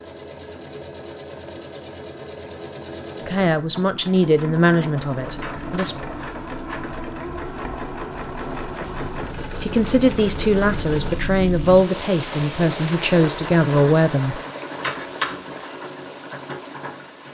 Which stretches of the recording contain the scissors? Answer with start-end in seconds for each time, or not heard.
5.4-7.0, 14.8-15.7.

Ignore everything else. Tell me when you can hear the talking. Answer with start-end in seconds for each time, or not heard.
3.2-6.0, 9.6-14.4.